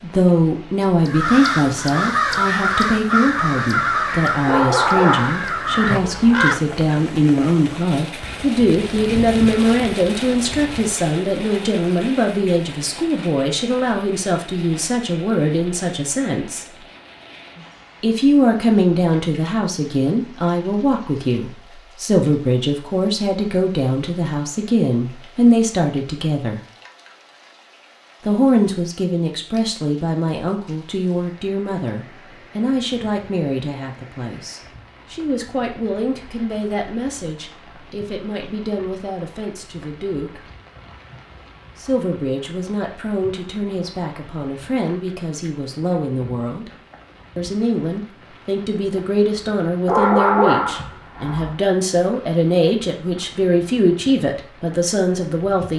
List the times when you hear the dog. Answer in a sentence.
You can hear the dog from 4.5 to 6.3 s and from 49.9 to 51.5 s.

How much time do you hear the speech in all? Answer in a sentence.
You can hear the speech for 51 seconds altogether.